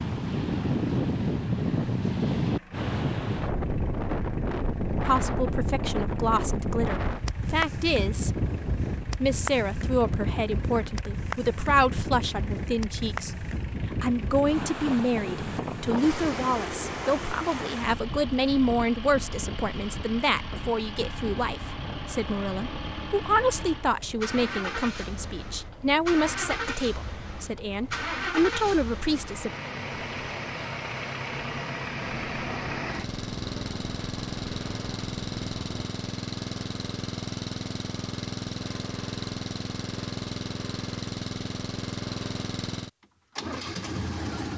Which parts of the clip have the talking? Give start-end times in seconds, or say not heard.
5.0-8.4, 9.2-29.5.